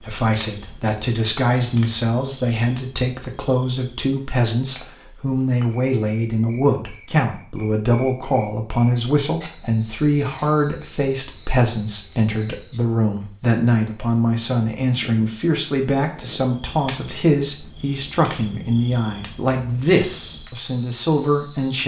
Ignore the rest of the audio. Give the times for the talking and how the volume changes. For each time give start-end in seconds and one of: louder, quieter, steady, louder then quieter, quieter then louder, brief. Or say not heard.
0.0-21.8 steady.